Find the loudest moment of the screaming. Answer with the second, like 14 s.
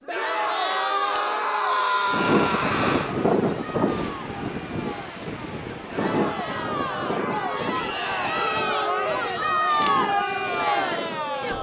2 s.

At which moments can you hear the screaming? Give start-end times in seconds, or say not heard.
0.5-3.1, 7.8-8.4.